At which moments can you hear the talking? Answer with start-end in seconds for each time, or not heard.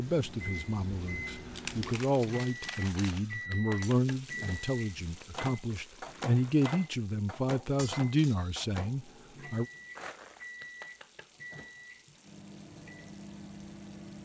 0.0-9.7.